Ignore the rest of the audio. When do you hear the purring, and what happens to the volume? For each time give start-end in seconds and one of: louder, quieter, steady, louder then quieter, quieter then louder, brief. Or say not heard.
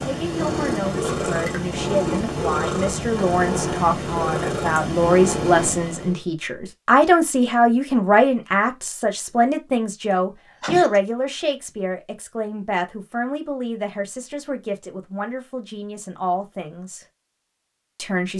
0.0-6.2 steady.